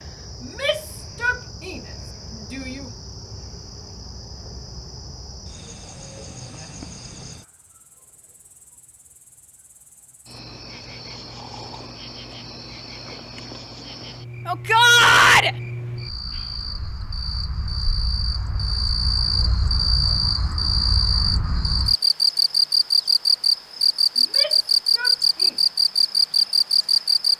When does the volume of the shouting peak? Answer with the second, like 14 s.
15 s.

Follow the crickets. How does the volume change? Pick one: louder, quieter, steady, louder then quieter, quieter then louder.
louder.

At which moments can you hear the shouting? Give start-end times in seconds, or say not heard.
0.4-1.8, 2.4-2.9, 14.4-15.6, 24.1-25.6.